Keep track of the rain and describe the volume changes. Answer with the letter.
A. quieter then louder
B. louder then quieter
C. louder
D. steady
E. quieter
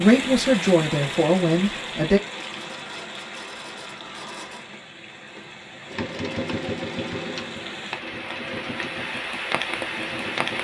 A.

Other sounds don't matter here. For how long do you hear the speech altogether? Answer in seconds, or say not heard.
2 s.